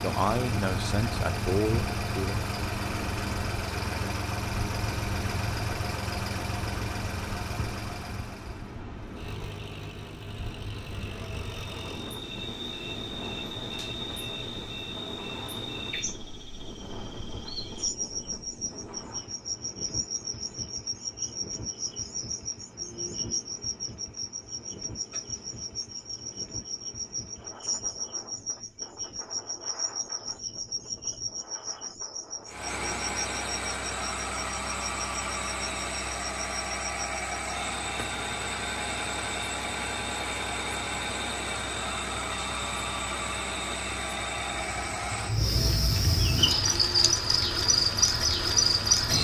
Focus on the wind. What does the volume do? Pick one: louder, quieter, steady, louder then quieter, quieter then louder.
quieter.